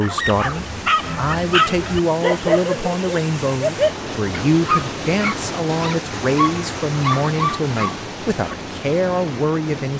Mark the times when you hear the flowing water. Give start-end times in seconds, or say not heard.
0.0-9.9.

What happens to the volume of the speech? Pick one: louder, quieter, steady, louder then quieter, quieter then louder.
steady.